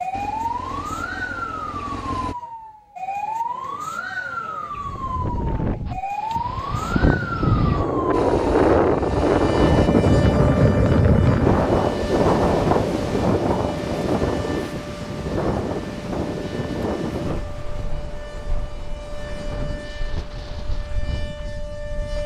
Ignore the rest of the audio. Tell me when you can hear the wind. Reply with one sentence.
You can hear the wind from 4.7 to 22.2 s.